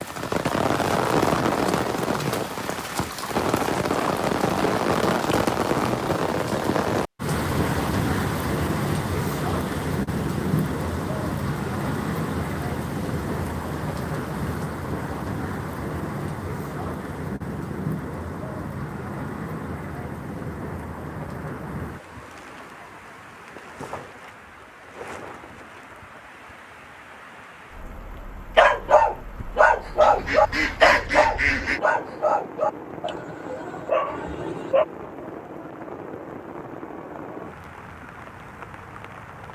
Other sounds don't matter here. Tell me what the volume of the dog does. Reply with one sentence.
The volume of the dog goes down.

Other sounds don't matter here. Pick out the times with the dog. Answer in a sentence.
You can hear the dog from 28.6 to 34.9 s.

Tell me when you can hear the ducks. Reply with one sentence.
The ducks can be heard from 30.0 to 31.8 s.